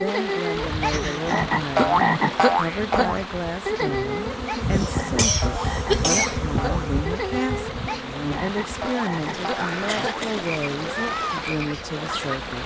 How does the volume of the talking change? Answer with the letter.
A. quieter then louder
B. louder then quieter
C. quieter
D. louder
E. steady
E.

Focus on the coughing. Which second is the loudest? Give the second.
6 s.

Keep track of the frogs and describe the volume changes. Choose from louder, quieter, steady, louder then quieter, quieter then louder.
quieter.